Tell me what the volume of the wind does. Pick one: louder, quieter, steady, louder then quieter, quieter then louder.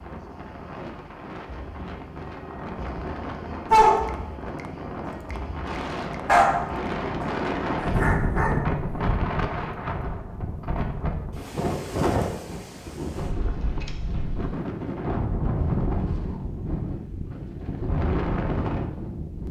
louder.